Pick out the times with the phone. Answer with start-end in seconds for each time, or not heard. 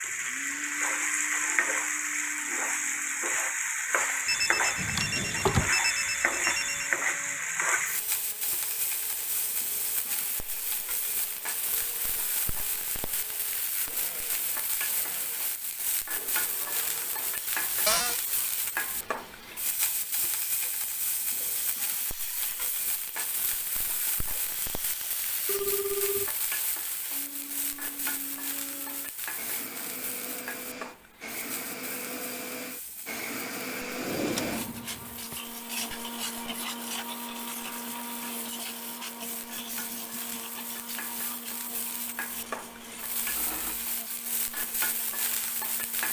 4.2-6.9, 25.4-26.3, 43.2-43.9.